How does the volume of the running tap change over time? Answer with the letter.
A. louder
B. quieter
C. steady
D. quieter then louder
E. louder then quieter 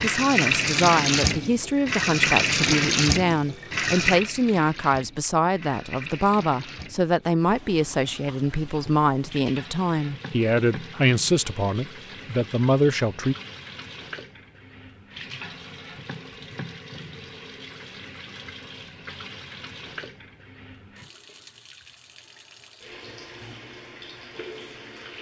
B.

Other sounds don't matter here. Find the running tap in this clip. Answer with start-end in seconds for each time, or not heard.
0.0-25.1.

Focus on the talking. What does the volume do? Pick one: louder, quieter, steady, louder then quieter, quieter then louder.
steady.